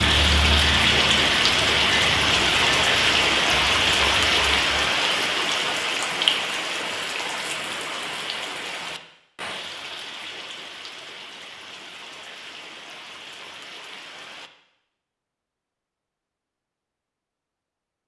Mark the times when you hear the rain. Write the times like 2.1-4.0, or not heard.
0.0-14.5.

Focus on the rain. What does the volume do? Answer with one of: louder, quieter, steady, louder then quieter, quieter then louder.
quieter.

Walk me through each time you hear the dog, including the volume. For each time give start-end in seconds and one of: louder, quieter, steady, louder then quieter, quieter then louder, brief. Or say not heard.
not heard.